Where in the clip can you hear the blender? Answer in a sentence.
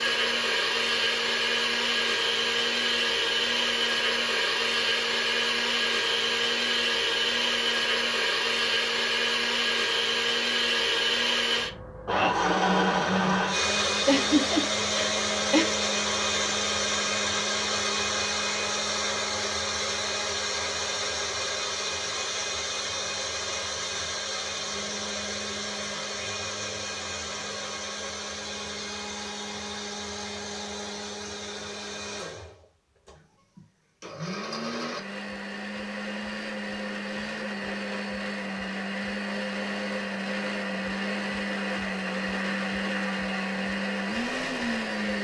You can hear the blender from 0.0 to 45.2 s.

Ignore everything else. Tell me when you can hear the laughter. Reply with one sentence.
The laughter can be heard from 14.1 to 15.7 s.